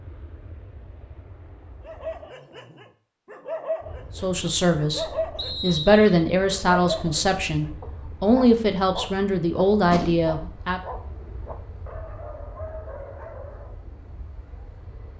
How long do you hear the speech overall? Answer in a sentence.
You can hear the speech for 7 seconds altogether.